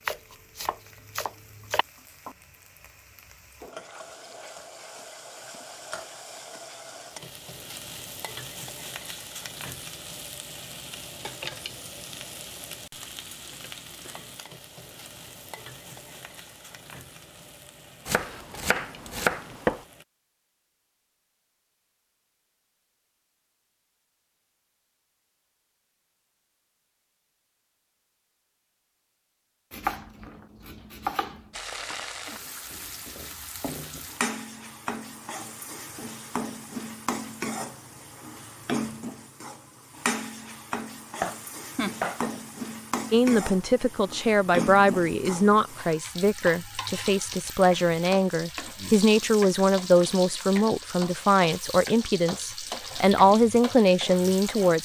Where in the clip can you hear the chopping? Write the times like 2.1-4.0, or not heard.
0.1-1.9, 18.1-19.9, 29.7-31.5, 41.1-42.4.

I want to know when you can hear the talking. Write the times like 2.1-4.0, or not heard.
43.1-54.7.